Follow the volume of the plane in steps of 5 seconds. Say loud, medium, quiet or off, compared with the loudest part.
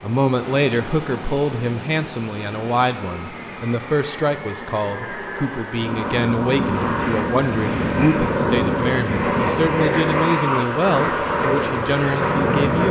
quiet, loud, loud.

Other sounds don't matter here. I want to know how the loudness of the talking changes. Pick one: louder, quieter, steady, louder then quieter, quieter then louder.
steady.